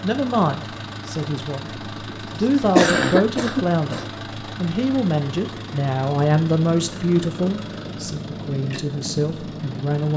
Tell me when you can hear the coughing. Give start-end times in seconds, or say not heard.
2.2-4.1.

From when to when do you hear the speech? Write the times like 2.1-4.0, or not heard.
0.0-10.1.